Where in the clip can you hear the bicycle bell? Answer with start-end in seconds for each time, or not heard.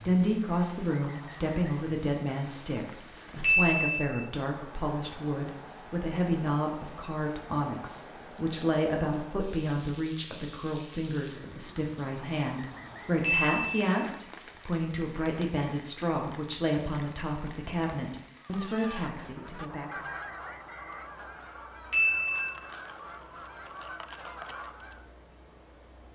3.4-4.2, 13.2-14.8, 21.9-22.6.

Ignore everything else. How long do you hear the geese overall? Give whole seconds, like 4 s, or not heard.
7 s.